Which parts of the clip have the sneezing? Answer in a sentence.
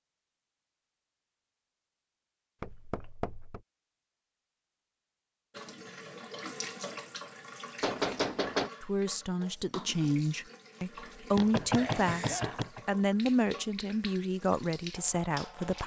The sneezing can be heard from 11.7 to 12.7 s.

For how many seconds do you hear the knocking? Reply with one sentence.
You can hear the knocking for 3 seconds altogether.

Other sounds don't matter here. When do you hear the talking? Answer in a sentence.
The talking can be heard from 8.8 to 15.8 s.